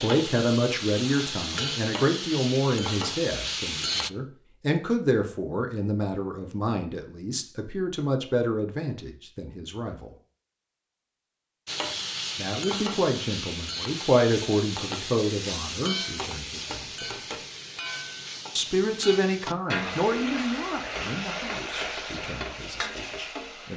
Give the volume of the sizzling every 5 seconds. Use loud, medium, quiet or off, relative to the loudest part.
loud, off, loud, loud, loud.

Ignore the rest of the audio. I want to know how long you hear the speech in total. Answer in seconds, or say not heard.
20 s.